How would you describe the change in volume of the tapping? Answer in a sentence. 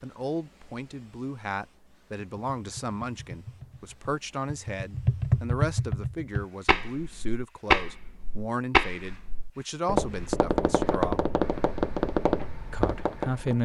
The volume of the tapping goes up.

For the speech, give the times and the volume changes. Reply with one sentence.
The speech can be heard from 0.0 to 11.2 s, at a steady volume; and briefly from 12.7 to 13.6 s.